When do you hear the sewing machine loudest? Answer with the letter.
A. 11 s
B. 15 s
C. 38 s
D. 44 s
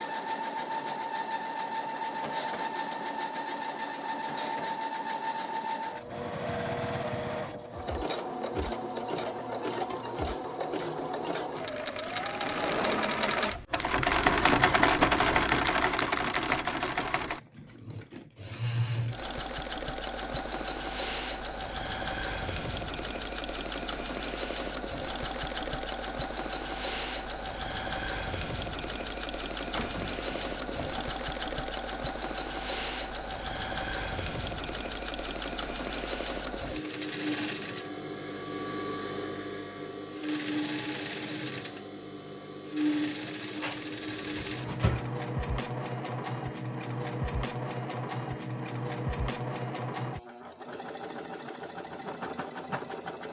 B.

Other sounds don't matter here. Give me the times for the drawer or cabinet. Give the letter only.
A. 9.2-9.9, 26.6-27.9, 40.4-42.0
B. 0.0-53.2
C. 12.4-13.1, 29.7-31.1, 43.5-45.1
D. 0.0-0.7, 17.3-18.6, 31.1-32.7
C.